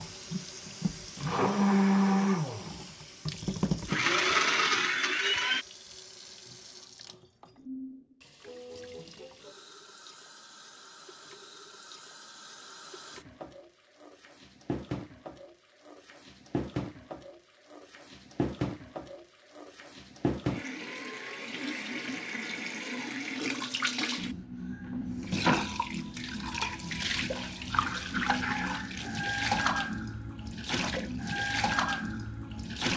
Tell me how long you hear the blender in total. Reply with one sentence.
You can hear the blender for 6 seconds altogether.